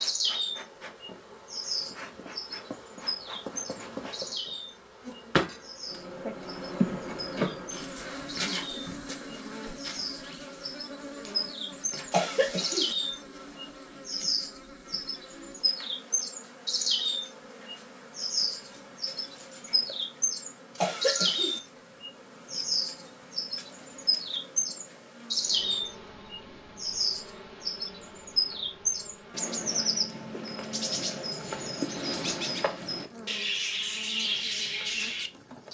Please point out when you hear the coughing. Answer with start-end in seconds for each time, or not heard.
12.1-12.9, 20.8-21.6.